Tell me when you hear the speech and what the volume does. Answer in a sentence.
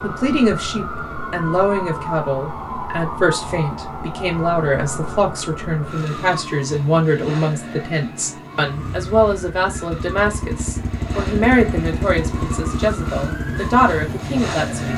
You can hear the speech from 0.0 to 14.9 s, at a steady volume.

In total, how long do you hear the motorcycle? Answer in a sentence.
The motorcycle can be heard for 6 seconds in total.